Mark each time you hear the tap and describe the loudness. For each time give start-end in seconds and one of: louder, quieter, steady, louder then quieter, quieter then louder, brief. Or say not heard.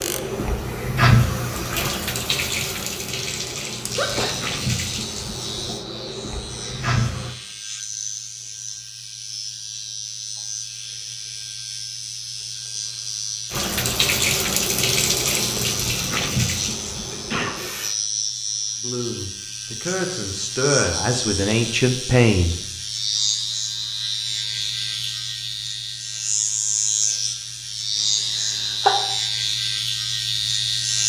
0.0-7.3 quieter
13.5-17.9 quieter.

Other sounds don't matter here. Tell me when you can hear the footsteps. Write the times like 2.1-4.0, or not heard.
not heard.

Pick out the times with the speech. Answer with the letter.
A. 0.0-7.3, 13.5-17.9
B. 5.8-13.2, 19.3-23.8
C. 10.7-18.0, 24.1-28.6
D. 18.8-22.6
D.